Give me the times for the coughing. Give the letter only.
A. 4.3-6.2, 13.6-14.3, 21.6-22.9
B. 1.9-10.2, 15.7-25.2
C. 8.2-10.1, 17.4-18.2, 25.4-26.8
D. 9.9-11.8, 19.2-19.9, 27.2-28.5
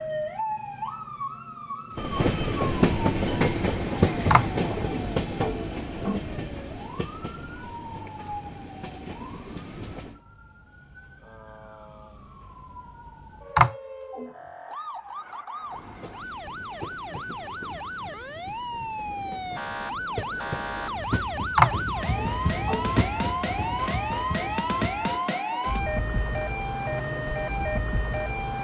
A.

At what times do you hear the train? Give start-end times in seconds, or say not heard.
1.9-10.2, 15.7-25.2.